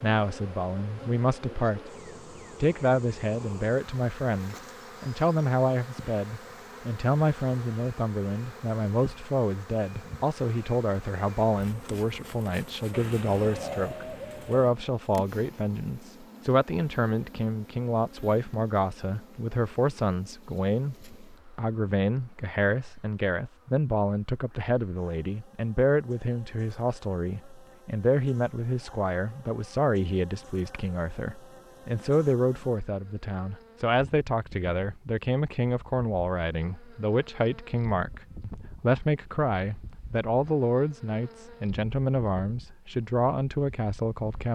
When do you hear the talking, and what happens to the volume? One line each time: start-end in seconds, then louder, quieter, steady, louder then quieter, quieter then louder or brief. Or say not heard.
0.0-1.9 brief
2.6-44.4 steady.